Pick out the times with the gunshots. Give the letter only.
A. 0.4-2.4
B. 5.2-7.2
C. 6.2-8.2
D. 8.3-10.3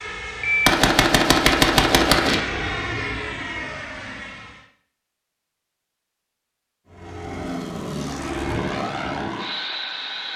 A.